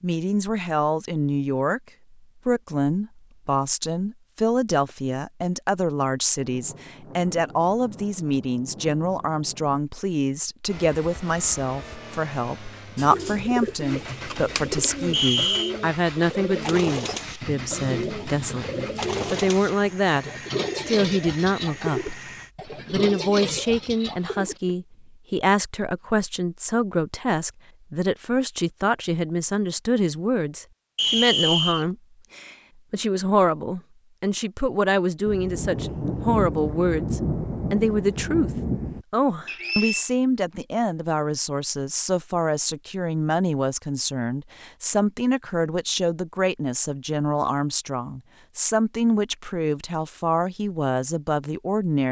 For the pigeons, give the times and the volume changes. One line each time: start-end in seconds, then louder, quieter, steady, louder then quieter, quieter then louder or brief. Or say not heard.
12.9-24.8 steady.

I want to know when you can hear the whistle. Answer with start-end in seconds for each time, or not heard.
15.1-15.8, 30.9-31.9, 39.5-40.1.